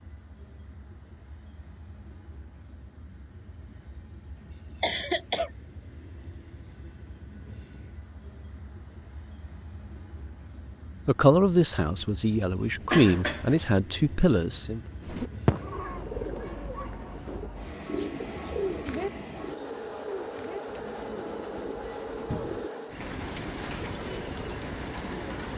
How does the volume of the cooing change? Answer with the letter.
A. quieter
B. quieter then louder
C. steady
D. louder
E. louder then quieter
A.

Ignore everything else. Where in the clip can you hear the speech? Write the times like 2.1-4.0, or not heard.
11.1-14.8.